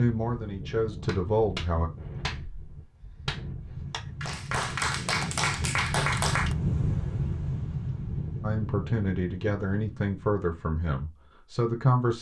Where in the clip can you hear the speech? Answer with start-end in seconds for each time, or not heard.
0.0-1.9, 8.4-12.1.